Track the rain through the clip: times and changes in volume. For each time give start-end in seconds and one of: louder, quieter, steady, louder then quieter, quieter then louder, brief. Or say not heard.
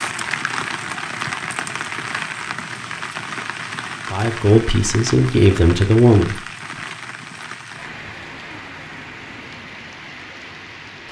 0.0-11.0 quieter.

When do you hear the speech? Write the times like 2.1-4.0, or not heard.
4.1-6.4.